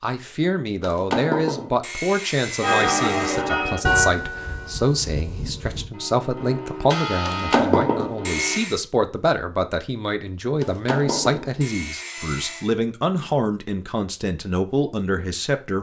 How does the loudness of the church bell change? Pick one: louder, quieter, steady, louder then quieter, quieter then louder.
quieter then louder.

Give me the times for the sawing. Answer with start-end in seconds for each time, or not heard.
0.8-3.4, 7.2-8.8, 10.6-12.7.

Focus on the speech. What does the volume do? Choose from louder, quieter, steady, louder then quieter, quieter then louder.
steady.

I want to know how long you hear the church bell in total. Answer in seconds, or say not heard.
6 s.